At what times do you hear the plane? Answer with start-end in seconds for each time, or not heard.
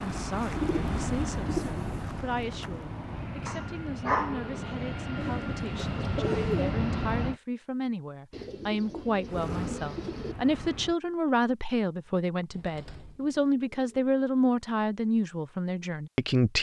0.0-7.4, 9.2-10.9.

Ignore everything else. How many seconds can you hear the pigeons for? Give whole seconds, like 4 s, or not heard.
7 s.